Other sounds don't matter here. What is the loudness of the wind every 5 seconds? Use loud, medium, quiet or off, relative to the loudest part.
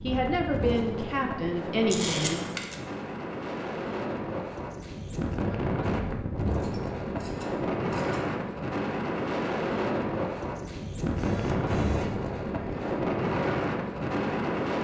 medium, loud, loud.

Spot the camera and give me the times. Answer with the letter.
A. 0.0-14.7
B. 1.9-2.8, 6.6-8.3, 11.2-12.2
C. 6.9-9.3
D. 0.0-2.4
B.